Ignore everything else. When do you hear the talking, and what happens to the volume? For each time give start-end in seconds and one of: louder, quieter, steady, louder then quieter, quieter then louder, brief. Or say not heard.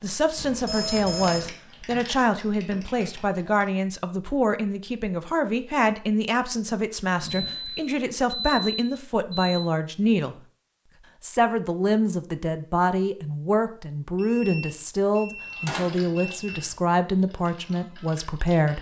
0.0-10.3 steady
11.2-18.7 steady.